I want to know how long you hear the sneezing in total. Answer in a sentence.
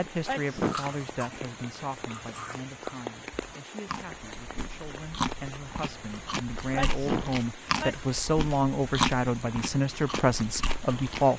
The sneezing can be heard for 2 seconds in total.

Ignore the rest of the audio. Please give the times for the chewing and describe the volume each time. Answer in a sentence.
You can hear the chewing from 0.7 to 11.2 s, getting louder.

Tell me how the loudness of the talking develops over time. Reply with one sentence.
The volume of the talking goes down, then up.